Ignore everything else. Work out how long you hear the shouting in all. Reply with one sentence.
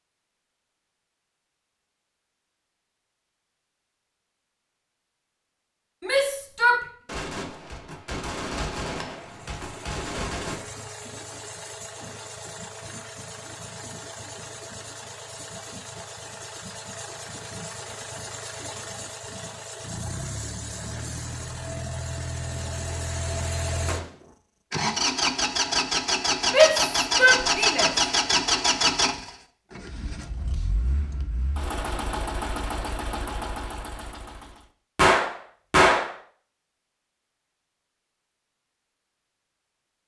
The shouting can be heard for 2 seconds in total.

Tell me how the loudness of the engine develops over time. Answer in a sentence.
The volume of the engine goes up, then down.